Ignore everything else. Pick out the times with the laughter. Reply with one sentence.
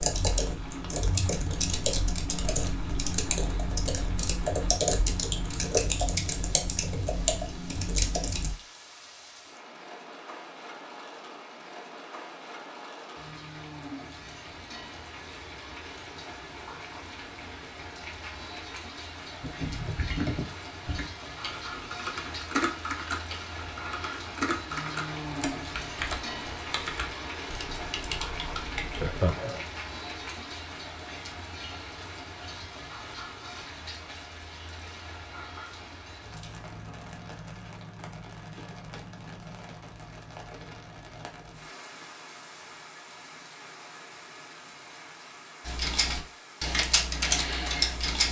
You can hear the laughter from 29.0 to 29.6 s.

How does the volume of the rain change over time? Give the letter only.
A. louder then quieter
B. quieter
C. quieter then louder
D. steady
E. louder
A.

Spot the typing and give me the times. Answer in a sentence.
You can hear the typing from 0.0 to 8.6 s, from 19.4 to 29.4 s and from 45.6 to 48.2 s.